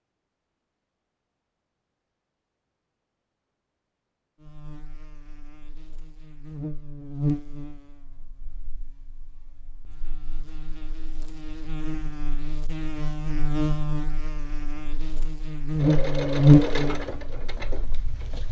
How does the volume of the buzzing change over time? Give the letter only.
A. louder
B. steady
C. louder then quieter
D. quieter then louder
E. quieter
D.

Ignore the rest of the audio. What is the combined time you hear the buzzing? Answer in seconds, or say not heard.
14 s.